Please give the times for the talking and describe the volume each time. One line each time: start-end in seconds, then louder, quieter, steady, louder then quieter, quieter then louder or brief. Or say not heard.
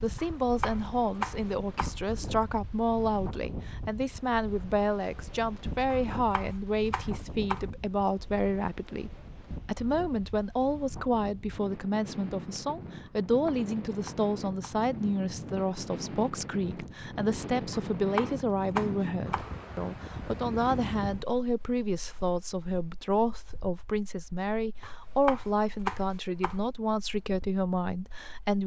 0.0-28.6 steady.